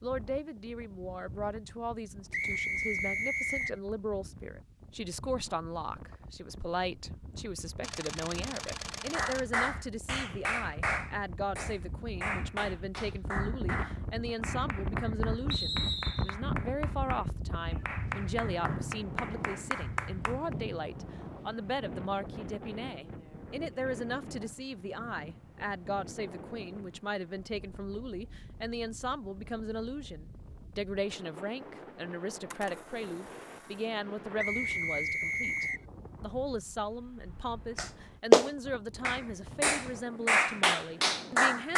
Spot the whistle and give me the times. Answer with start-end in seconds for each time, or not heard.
2.3-3.8, 15.5-16.4, 34.4-35.9.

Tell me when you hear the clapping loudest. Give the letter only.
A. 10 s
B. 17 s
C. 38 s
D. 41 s
C.